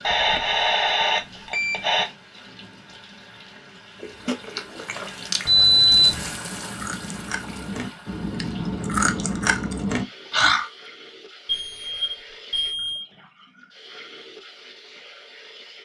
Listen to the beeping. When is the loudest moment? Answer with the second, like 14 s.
6 s.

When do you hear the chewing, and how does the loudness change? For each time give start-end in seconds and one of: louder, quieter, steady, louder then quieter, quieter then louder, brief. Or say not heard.
4.0-10.7 quieter then louder.